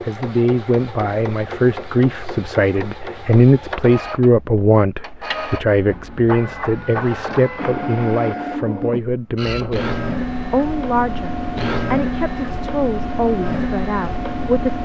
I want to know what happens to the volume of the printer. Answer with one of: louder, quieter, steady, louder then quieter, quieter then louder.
louder.